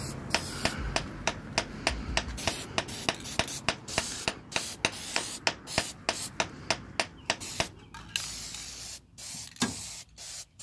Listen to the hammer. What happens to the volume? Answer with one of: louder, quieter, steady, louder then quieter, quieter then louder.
quieter.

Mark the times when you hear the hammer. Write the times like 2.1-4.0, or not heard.
0.3-7.7.